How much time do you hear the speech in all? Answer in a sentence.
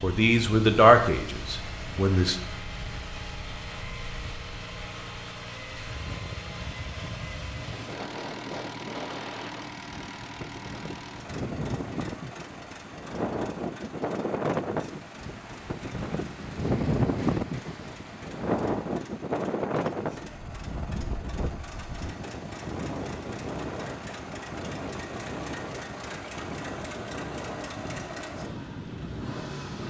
The speech can be heard for 2 seconds in total.